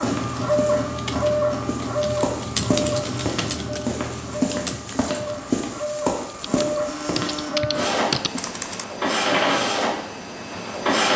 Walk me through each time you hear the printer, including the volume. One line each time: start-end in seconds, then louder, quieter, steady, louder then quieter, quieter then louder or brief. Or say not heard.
0.0-11.1 quieter then louder.